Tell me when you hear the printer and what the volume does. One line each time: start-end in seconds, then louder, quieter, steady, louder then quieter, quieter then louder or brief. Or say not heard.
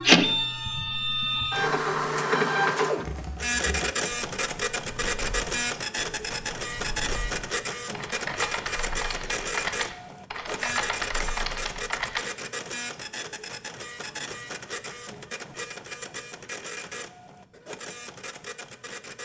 0.0-19.2 quieter.